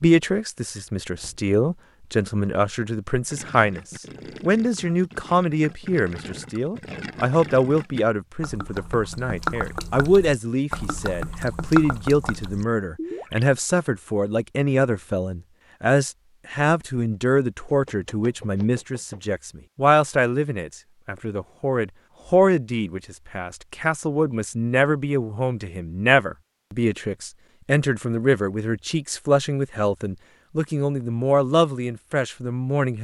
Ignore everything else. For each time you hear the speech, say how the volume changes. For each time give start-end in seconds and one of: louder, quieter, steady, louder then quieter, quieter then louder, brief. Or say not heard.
0.0-32.9 steady.